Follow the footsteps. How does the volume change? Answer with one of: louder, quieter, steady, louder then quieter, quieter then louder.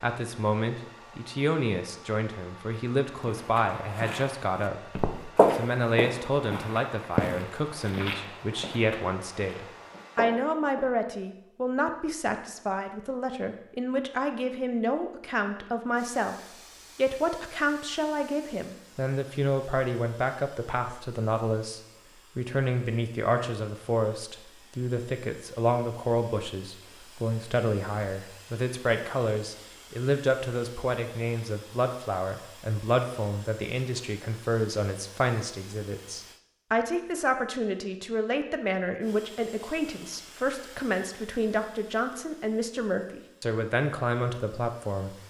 louder then quieter.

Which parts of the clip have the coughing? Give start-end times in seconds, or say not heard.
not heard.